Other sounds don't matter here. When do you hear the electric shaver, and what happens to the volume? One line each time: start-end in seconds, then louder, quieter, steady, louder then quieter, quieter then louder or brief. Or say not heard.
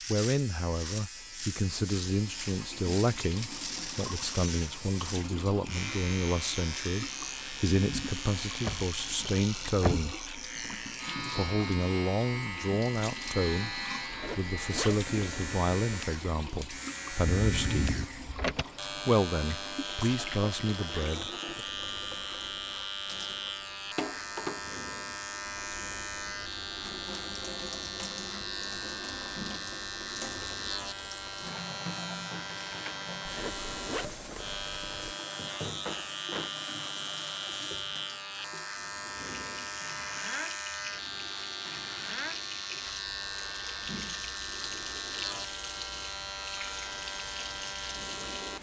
0.0-48.5 steady.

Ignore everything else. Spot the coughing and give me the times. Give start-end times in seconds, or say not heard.
not heard.